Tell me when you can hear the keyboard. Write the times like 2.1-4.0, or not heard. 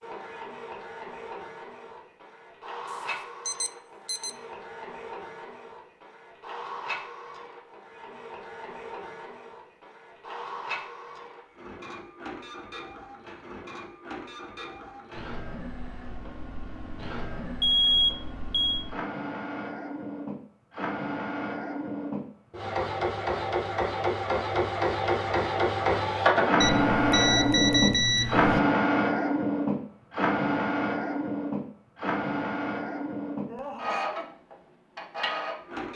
not heard.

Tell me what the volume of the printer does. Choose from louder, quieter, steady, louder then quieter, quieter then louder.
louder.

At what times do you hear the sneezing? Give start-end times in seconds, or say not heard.
33.5-34.3.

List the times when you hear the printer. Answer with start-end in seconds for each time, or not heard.
0.0-35.9.